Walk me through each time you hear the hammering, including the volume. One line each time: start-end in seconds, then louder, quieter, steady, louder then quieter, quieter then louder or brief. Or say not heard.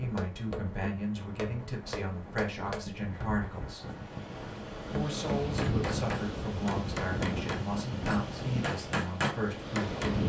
0.0-10.2 louder.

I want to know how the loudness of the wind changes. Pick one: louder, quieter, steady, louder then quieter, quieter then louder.
louder then quieter.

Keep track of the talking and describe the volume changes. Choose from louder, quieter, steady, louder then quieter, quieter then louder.
steady.